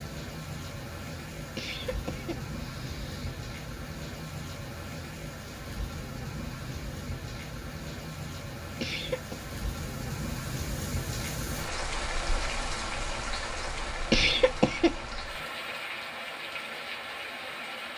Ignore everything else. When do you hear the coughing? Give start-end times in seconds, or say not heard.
1.6-3.4, 8.8-9.4, 14.1-15.2.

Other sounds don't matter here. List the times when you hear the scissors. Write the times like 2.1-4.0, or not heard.
not heard.